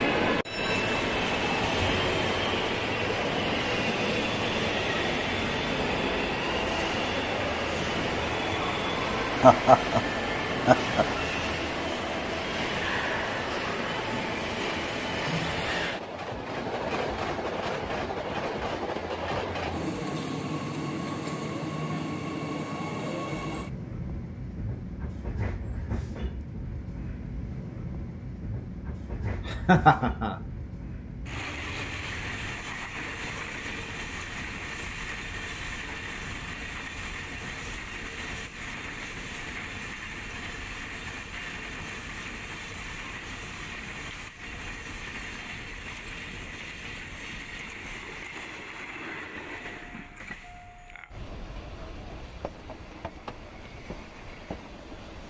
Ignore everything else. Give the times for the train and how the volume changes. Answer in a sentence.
You can hear the train from 0.0 to 55.2 s, getting quieter.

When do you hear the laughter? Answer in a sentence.
You can hear the laughter from 9.4 to 11.2 s and from 29.4 to 30.4 s.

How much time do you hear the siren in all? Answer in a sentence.
The siren can't be heard in this clip.